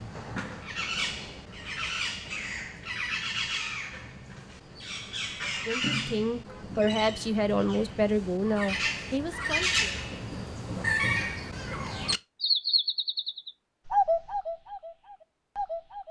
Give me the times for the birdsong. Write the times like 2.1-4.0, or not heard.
0.0-16.0.